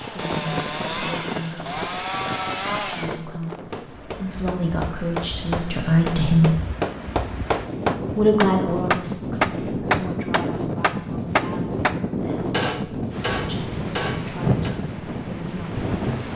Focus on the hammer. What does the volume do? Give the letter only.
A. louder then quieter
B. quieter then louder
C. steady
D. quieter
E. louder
A.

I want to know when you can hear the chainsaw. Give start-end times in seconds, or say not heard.
0.0-3.2.